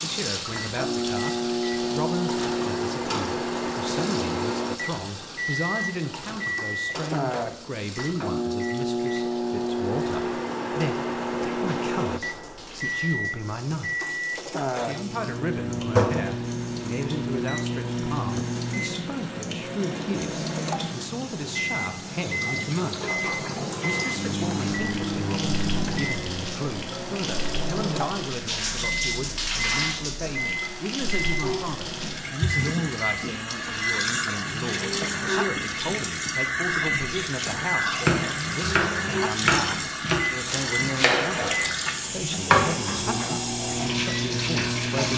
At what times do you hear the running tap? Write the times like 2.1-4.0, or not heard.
0.0-45.1.